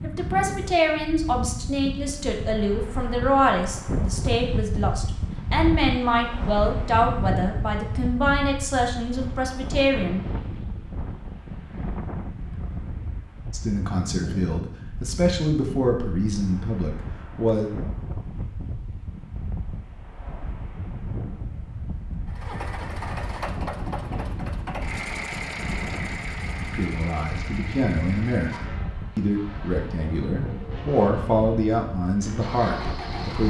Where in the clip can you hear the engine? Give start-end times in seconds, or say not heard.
22.2-33.4.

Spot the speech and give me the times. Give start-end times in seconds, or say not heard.
0.0-10.2, 13.5-17.7, 26.7-33.4.